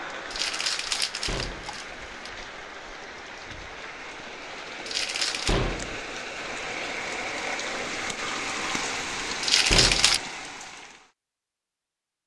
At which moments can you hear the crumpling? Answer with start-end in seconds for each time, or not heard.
0.3-2.3, 4.8-5.6, 9.4-10.2.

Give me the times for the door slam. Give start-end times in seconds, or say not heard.
1.2-1.8, 5.5-6.0, 9.7-10.2.